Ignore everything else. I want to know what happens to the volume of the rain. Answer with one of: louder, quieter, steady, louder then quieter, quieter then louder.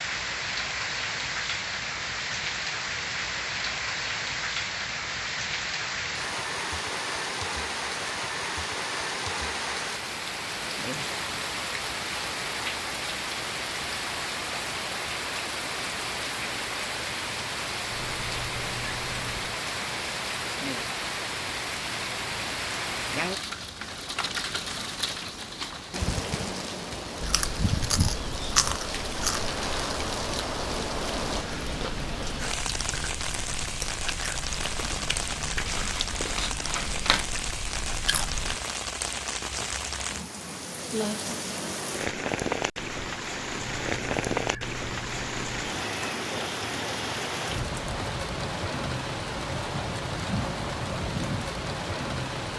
steady.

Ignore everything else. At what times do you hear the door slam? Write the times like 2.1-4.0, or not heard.
not heard.